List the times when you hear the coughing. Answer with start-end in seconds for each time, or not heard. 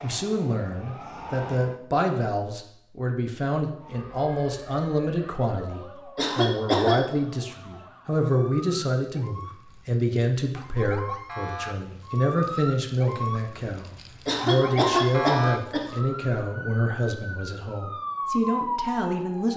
6.2-7.0, 14.2-15.8.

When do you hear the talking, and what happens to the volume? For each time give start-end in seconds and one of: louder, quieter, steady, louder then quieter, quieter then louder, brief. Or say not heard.
0.0-19.5 steady.